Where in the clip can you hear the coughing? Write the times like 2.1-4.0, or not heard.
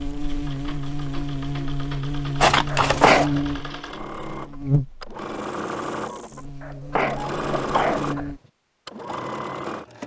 2.7-3.4, 6.6-8.3.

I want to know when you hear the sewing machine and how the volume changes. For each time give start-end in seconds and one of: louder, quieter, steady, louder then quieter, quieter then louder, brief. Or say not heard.
0.0-10.0 louder.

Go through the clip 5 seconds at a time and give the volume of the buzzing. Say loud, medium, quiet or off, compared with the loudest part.
loud, medium.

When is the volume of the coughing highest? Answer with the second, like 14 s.
3 s.